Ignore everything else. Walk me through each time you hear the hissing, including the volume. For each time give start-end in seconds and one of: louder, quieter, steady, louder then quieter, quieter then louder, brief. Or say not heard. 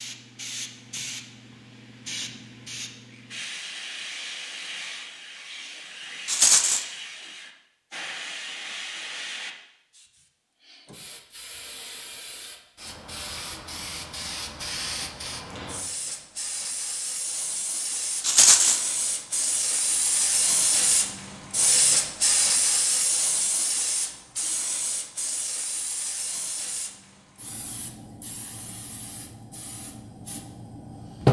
0.0-31.2 louder then quieter.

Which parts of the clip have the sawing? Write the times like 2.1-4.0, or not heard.
not heard.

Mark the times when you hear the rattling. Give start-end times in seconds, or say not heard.
6.2-6.8, 18.2-18.8.